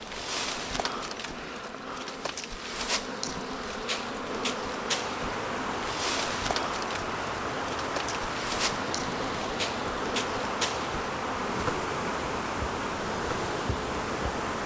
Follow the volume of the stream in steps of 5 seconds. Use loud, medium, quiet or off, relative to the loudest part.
medium, loud, loud.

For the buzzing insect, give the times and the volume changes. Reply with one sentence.
You can hear the buzzing insect from 0.0 to 14.6 s, at a steady volume.